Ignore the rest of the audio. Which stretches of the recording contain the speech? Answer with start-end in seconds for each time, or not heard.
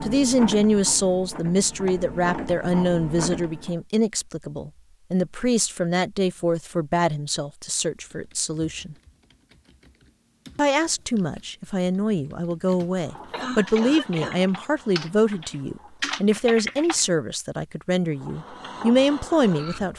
0.0-8.9, 10.6-19.9.